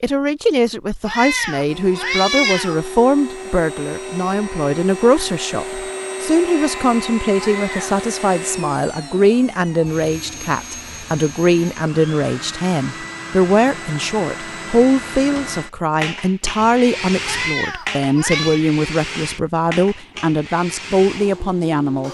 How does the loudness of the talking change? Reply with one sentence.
The volume of the talking stays about the same.